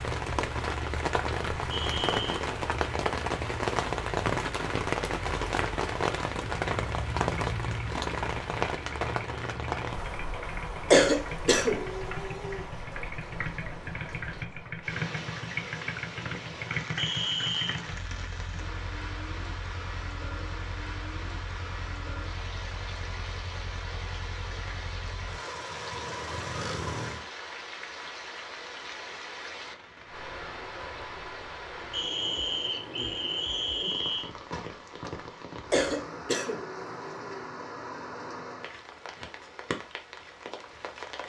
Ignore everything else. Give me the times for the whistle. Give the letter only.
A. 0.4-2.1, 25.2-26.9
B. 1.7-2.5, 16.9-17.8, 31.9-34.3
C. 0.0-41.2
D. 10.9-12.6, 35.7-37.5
B.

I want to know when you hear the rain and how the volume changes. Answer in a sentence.
The rain can be heard from 0.0 to 41.2 s, getting quieter.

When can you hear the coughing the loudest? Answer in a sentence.
The loudest moment of the coughing is at 11 seconds.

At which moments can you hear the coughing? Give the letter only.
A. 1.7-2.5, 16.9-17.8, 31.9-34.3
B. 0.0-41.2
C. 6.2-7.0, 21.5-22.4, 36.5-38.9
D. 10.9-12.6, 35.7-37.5
D.